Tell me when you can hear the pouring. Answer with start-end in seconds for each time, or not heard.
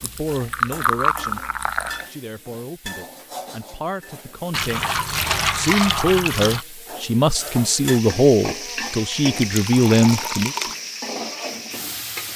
0.0-2.0, 4.5-6.7, 9.3-10.8.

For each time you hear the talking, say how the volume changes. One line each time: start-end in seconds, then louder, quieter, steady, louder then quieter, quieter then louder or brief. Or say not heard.
0.0-1.4 brief
2.0-10.6 louder.